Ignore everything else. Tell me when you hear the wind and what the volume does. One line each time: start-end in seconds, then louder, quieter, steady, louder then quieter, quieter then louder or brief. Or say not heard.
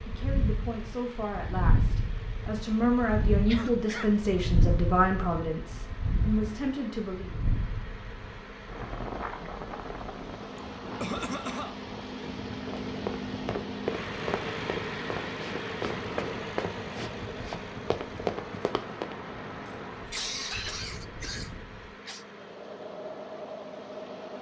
0.0-24.3 quieter.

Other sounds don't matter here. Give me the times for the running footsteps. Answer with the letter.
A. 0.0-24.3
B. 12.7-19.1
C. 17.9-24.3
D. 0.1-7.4
B.